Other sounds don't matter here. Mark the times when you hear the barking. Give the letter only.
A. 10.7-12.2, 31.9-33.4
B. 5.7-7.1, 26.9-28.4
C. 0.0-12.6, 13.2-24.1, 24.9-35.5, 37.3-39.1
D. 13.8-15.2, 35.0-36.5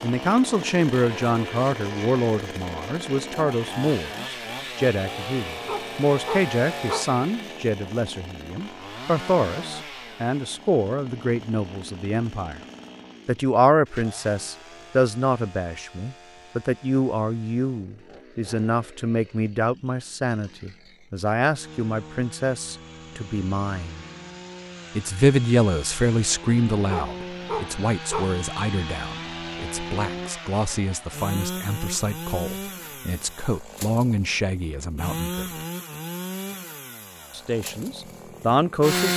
B.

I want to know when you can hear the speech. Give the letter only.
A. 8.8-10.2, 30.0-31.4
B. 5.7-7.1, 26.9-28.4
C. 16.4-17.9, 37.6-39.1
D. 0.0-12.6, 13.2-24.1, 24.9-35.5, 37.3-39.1
D.